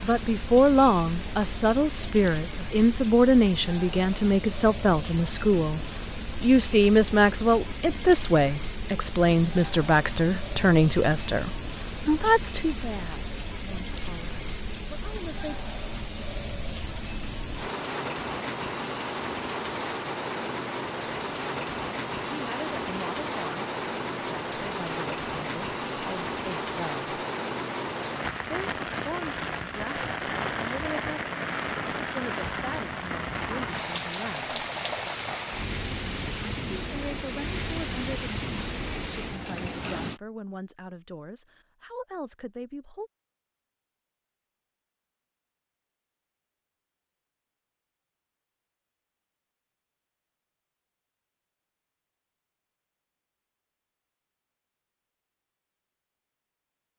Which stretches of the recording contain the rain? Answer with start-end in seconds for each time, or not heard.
0.0-40.2.